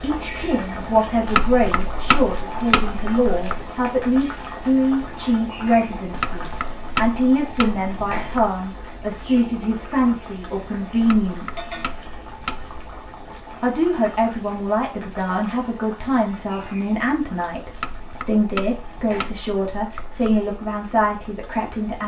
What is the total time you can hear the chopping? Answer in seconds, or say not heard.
9 s.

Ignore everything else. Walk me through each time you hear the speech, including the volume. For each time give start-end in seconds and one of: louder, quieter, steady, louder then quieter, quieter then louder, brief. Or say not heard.
0.0-11.7 steady
13.6-22.0 steady.